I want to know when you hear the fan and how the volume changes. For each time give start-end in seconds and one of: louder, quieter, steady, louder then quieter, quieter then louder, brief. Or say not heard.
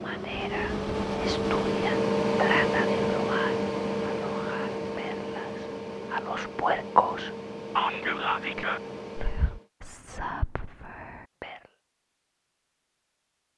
0.0-9.7 quieter.